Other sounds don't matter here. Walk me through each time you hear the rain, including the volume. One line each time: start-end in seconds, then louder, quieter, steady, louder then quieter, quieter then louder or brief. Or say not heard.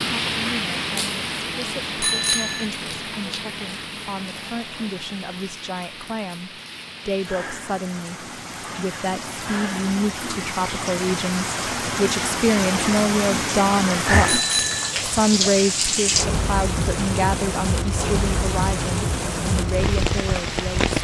0.0-20.9 quieter then louder.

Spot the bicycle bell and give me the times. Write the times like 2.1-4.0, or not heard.
2.0-2.6, 14.2-14.9.